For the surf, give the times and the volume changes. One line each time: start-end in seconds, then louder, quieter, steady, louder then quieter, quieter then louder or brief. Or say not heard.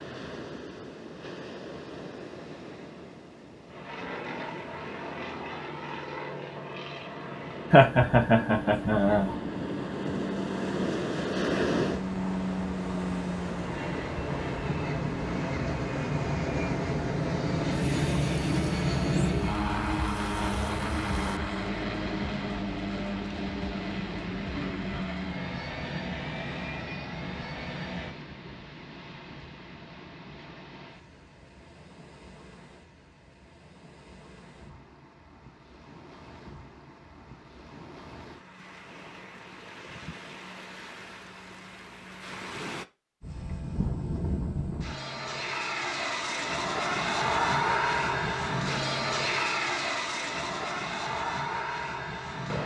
0.0-42.9 louder then quieter.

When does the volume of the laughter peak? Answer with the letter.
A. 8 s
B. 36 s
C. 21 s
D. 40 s
A.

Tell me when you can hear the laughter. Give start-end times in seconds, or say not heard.
7.7-9.3.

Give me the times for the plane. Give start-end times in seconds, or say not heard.
3.6-28.1, 43.2-52.6.